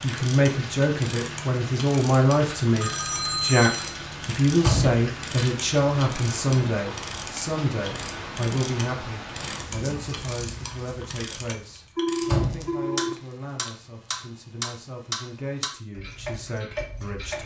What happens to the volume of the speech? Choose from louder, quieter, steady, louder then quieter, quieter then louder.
quieter.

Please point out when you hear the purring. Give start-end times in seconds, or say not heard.
not heard.